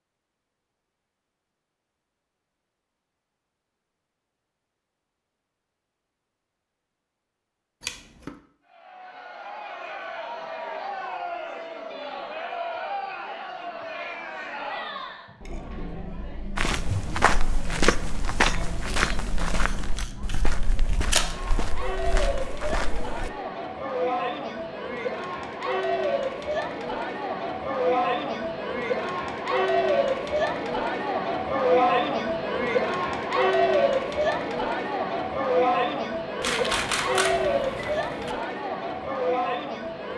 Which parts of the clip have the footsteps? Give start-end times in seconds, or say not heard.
16.6-23.3.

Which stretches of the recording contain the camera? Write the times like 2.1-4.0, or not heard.
7.8-8.3, 19.4-21.4, 36.4-38.4.